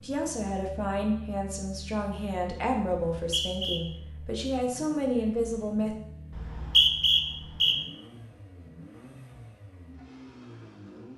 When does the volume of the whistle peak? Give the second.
7 s.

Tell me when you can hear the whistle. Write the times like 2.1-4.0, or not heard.
3.1-3.8, 6.3-7.8.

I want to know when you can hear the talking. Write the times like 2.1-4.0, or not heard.
0.0-6.0.